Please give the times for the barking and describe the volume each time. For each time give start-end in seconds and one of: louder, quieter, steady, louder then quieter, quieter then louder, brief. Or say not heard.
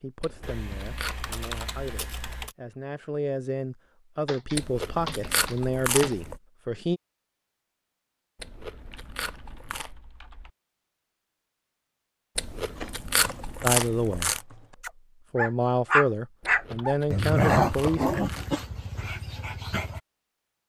14.8-20.0 quieter.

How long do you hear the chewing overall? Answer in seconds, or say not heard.
9 s.